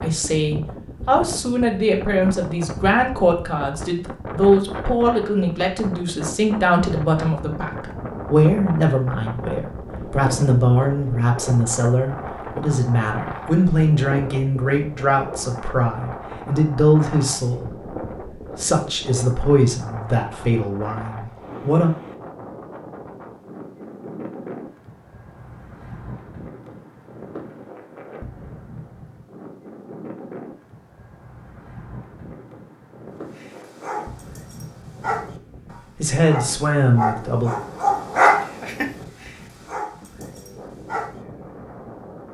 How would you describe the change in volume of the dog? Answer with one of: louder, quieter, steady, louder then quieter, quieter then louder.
louder then quieter.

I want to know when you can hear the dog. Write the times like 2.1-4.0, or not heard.
33.4-41.1.